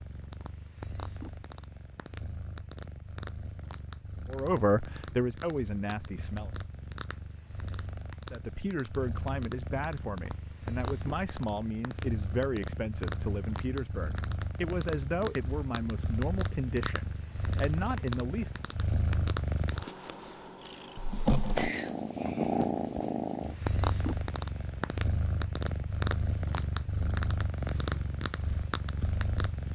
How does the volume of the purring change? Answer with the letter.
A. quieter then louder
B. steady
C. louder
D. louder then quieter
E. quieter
C.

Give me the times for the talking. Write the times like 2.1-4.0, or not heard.
4.2-6.5, 8.3-18.6.